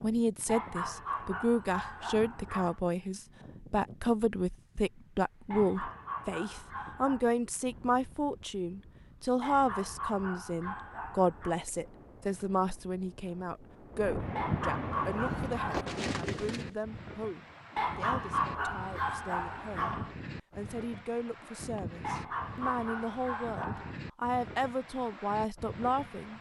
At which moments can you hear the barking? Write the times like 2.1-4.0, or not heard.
0.5-2.8, 5.5-7.2, 9.4-11.6, 14.3-15.8, 17.8-20.1, 22.0-24.0.